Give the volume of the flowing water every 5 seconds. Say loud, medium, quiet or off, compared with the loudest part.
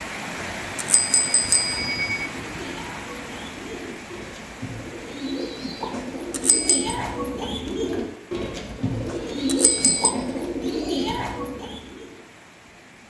loud, medium, quiet.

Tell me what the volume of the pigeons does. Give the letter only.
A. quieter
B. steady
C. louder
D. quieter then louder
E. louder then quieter
C.